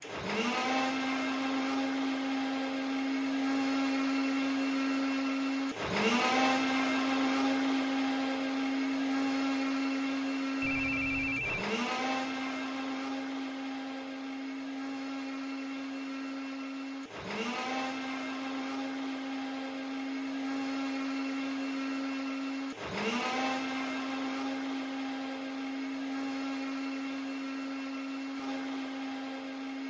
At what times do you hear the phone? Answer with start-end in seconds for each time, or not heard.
10.6-11.7.